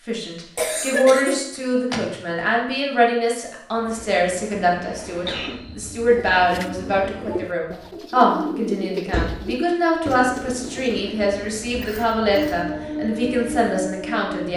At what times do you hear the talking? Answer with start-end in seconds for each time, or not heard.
0.1-14.5.